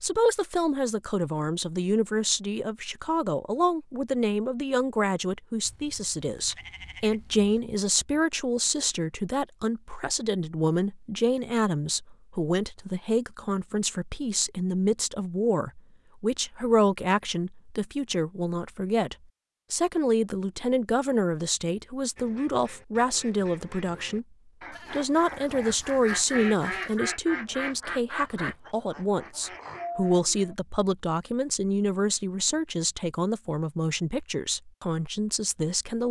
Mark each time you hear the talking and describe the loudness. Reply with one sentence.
You can hear the talking from 0.0 to 36.0 s, at a steady volume.